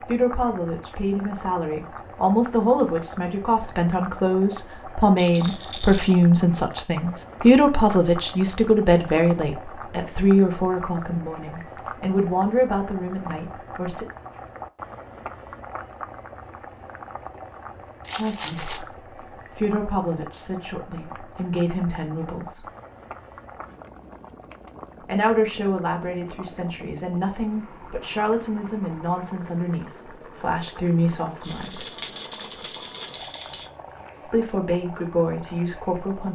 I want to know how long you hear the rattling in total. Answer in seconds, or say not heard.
4 s.